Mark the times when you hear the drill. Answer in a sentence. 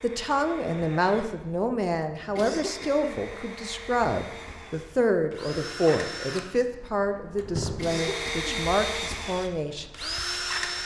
You can hear the drill from 0.0 to 10.8 s.